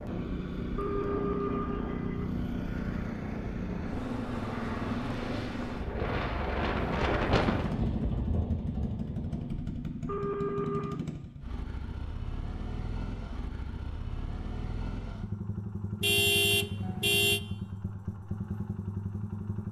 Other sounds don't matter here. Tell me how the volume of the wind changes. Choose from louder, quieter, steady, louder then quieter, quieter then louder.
louder then quieter.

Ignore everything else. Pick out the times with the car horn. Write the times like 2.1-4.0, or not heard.
0.8-2.2, 10.1-11.0, 16.0-17.4.